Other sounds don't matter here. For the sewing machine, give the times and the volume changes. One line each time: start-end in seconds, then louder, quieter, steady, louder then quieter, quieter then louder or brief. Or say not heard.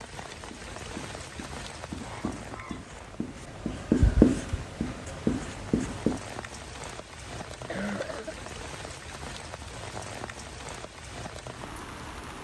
not heard.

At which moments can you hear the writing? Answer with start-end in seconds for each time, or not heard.
0.3-6.2.